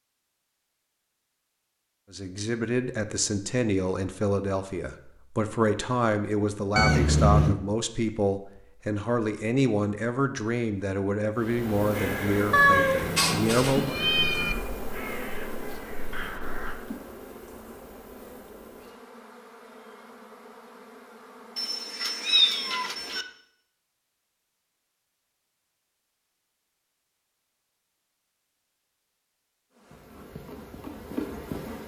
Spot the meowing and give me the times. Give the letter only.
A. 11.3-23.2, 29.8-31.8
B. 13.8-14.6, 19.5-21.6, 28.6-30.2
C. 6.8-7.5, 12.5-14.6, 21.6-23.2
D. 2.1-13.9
C.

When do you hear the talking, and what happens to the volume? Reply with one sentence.
You can hear the talking from 2.1 to 13.9 s, at a steady volume.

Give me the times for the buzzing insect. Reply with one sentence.
You can hear the buzzing insect from 11.3 to 23.2 s and from 29.8 to 31.8 s.